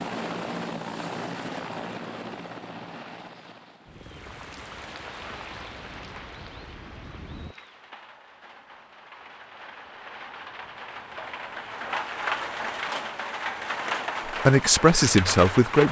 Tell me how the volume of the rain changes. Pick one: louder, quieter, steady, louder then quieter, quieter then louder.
quieter then louder.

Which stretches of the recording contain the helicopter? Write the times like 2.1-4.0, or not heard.
0.0-7.5.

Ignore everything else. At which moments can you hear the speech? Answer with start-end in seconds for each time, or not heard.
14.2-15.8.